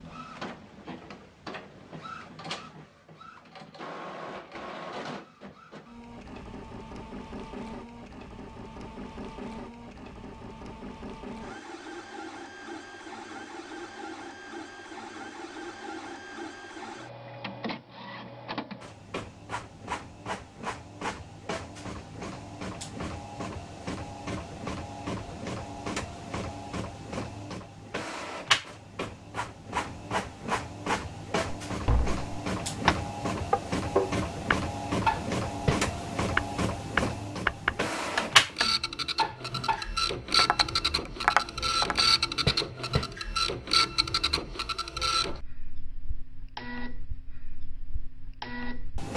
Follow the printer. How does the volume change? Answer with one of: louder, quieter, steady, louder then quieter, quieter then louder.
louder.